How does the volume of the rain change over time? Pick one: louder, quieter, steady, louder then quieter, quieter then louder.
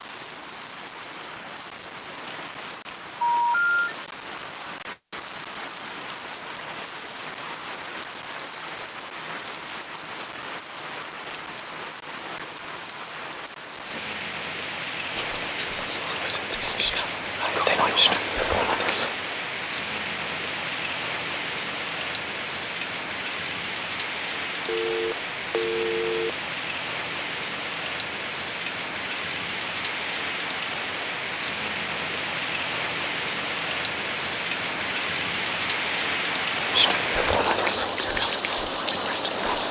louder.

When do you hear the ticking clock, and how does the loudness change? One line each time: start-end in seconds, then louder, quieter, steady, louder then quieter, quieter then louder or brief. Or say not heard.
not heard.